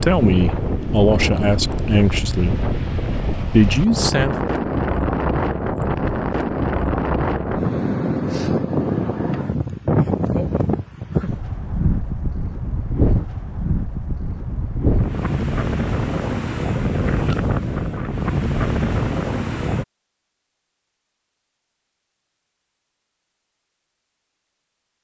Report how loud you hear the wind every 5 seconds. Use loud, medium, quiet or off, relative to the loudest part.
loud, loud, loud, loud, off.